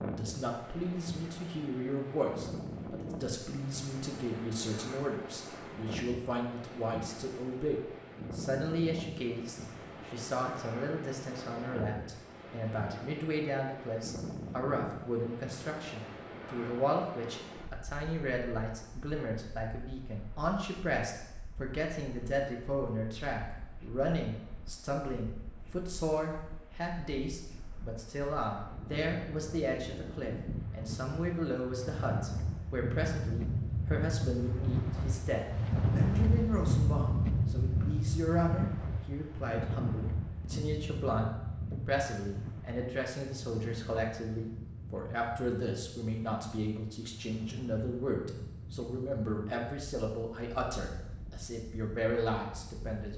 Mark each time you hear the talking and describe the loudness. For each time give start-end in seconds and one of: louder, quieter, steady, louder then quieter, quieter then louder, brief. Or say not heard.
0.0-53.1 steady.